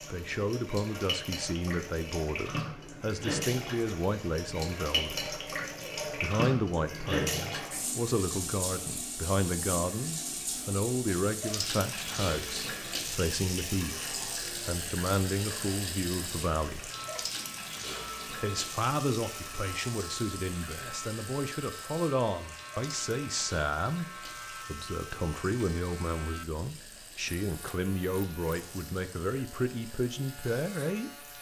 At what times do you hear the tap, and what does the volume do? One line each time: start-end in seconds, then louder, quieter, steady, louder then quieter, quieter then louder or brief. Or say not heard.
0.0-31.3 quieter.